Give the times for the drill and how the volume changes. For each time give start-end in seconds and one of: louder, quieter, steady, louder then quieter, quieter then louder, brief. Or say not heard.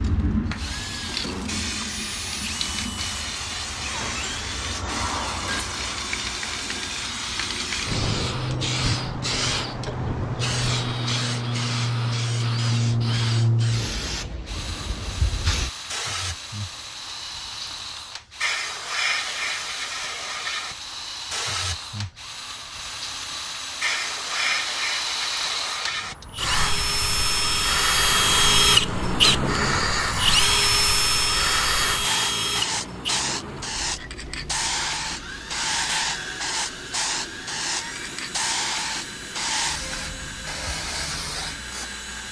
0.0-42.2 louder then quieter.